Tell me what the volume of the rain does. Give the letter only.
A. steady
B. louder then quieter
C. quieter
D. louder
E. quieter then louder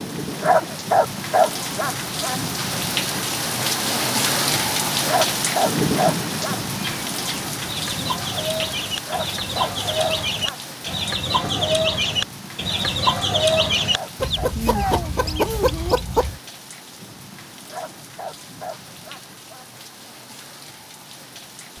C.